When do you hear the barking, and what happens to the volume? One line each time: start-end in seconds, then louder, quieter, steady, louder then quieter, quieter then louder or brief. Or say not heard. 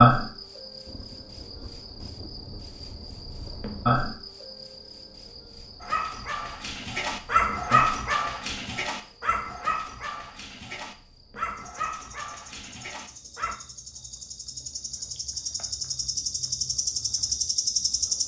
5.8-13.6 quieter.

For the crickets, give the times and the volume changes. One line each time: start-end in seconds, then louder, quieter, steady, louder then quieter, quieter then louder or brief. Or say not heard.
0.0-18.2 quieter then louder.